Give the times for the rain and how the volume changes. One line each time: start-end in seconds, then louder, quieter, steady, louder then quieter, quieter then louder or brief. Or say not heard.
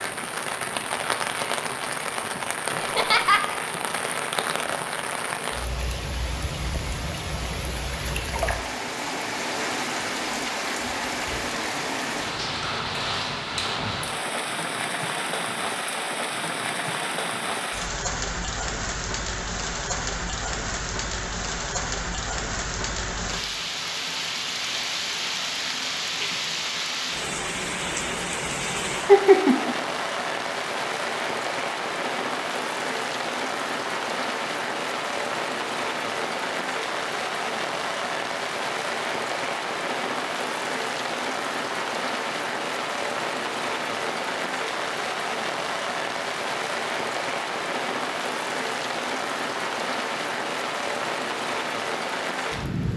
0.0-52.9 steady.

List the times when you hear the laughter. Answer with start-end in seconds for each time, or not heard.
2.8-3.4, 29.1-29.8.